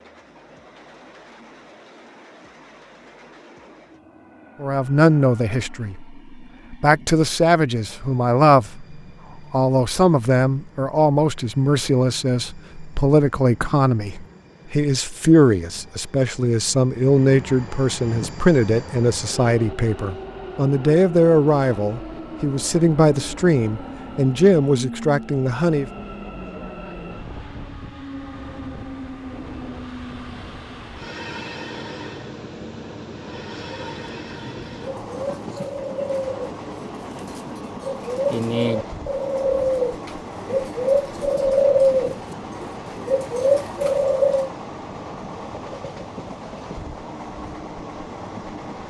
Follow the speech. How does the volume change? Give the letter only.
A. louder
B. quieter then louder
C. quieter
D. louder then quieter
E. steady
E.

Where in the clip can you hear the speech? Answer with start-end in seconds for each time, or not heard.
4.6-25.9.